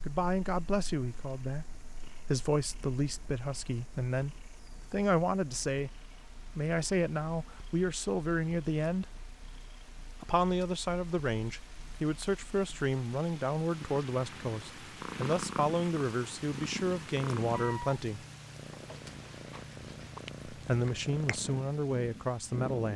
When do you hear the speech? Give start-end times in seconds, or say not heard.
0.1-9.1, 10.2-18.2, 20.5-22.9.